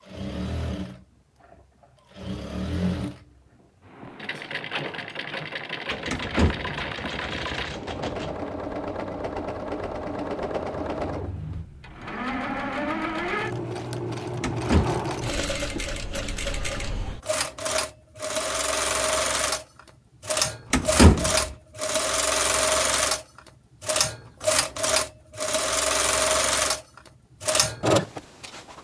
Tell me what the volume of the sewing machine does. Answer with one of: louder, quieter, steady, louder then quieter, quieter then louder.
louder.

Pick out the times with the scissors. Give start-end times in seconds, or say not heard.
not heard.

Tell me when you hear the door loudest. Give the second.
21 s.